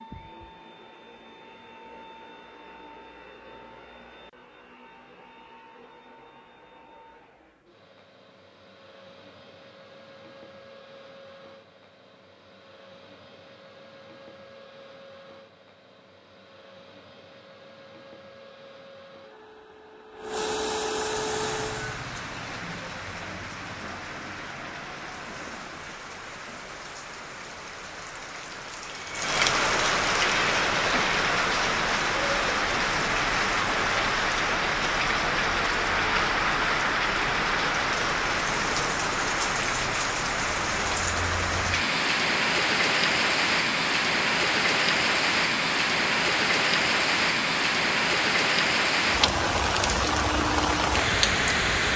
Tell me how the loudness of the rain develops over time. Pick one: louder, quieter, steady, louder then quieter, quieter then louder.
louder.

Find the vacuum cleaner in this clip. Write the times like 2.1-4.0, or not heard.
0.0-22.0.